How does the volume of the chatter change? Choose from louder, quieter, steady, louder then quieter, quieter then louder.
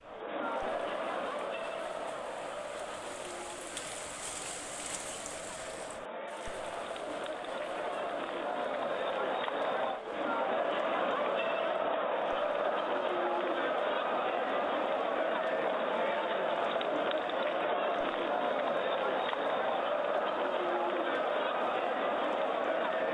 louder.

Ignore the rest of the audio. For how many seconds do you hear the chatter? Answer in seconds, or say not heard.
23 s.